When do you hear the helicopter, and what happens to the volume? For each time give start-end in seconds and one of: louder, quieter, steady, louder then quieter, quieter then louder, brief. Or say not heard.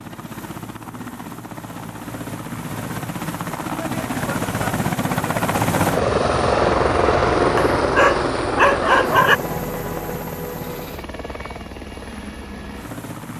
0.0-13.3 louder then quieter.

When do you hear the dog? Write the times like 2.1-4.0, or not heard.
7.5-9.4.